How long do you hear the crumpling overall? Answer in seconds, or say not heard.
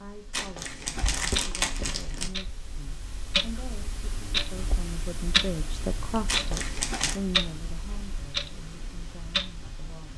3 s.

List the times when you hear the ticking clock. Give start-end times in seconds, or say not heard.
0.0-10.1.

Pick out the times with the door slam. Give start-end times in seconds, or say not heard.
not heard.